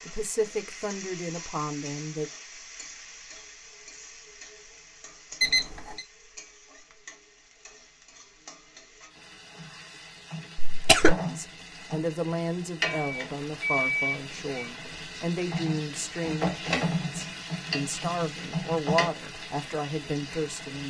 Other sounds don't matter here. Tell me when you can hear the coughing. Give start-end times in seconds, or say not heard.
10.6-11.2.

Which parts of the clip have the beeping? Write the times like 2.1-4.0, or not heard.
5.4-6.0, 12.8-14.7.